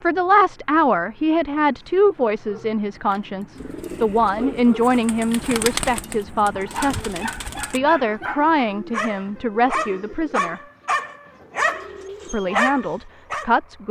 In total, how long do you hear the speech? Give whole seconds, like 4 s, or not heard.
12 s.